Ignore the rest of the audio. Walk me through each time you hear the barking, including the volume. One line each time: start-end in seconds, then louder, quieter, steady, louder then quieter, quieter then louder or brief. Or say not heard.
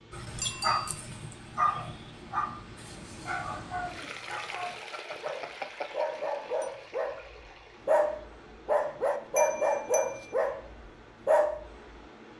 0.1-11.7 quieter then louder.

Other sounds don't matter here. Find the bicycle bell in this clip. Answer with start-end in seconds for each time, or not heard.
0.4-1.0, 4.9-6.7, 9.3-10.3.